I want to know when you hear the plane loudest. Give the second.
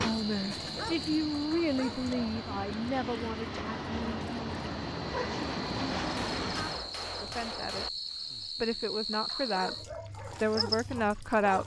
6 s.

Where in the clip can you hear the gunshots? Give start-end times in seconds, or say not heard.
6.0-7.9.